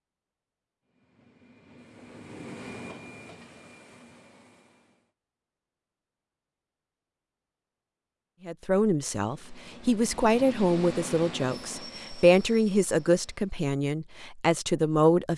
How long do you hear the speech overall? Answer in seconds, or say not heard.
7 s.